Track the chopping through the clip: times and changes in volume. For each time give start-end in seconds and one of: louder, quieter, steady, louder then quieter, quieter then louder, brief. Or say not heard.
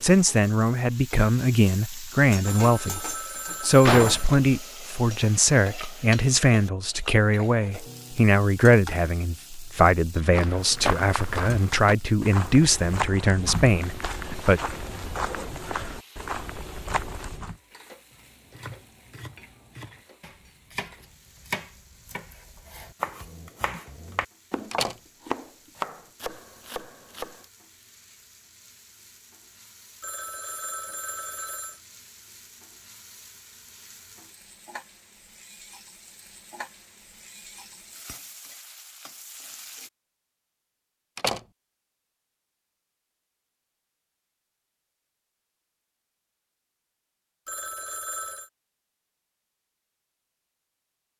18.1-27.4 louder.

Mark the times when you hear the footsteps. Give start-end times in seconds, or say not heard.
9.8-17.6.